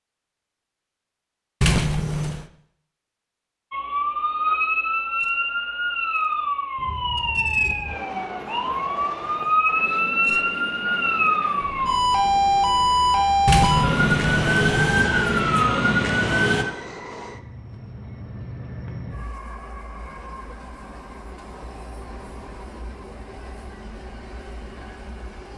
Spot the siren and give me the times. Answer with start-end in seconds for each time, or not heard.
3.7-16.6.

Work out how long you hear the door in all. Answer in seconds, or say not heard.
2 s.